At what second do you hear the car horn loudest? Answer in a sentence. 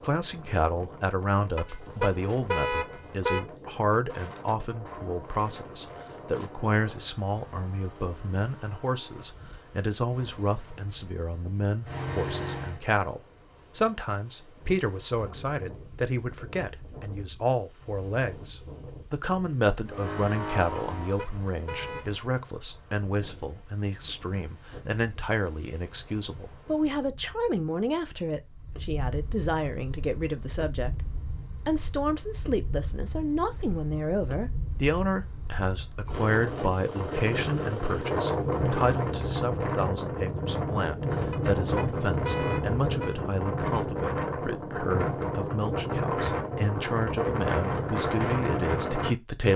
The volume of the car horn peaks at 3 seconds.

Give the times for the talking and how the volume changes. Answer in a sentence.
The talking can be heard from 0.0 to 49.5 s, at a steady volume.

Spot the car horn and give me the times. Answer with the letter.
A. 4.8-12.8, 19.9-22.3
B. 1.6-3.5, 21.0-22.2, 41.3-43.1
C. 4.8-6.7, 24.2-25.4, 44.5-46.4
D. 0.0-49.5
B.